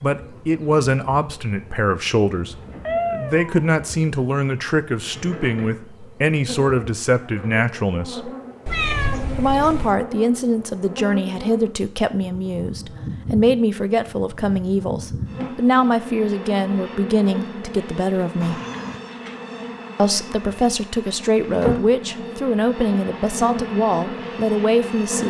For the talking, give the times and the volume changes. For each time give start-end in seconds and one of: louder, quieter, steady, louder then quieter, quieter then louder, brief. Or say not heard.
0.0-8.3 steady
9.3-18.6 steady
19.9-25.2 steady.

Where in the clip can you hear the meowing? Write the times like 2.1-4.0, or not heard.
2.9-3.5, 8.7-9.9, 18.4-19.0.